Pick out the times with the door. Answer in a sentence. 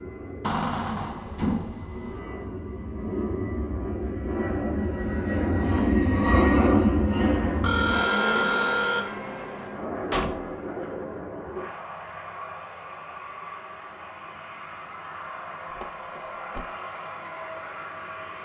You can hear the door from 0.4 to 2.2 s, from 10.1 to 10.6 s and from 15.7 to 16.6 s.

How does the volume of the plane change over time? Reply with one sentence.
The volume of the plane goes up, then down.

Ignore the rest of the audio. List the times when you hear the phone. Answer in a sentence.
You can hear the phone from 7.2 to 9.0 s.